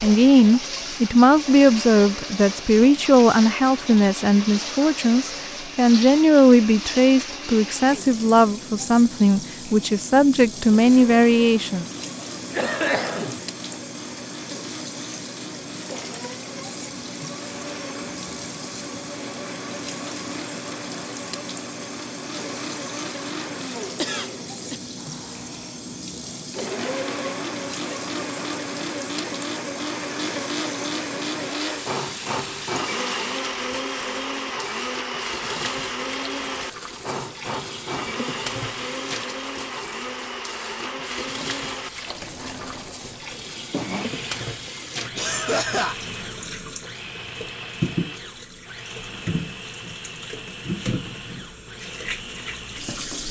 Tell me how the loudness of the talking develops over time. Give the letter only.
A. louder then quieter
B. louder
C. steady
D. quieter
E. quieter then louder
C.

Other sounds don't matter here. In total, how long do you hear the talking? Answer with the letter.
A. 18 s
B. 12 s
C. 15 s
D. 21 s
B.